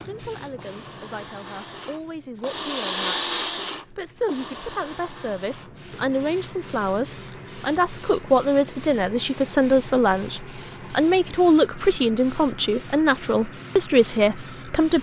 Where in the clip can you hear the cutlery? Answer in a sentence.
The cutlery can't be heard in this clip.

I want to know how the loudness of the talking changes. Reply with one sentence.
The loudness of the talking goes up.